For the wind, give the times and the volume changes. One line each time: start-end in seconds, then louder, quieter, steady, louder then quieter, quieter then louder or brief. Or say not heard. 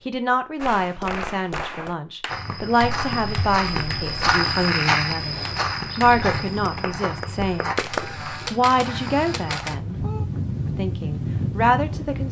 6.0-12.2 quieter then louder.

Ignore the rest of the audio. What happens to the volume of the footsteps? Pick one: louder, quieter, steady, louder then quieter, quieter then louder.
louder then quieter.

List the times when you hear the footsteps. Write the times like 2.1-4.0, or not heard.
2.2-9.6.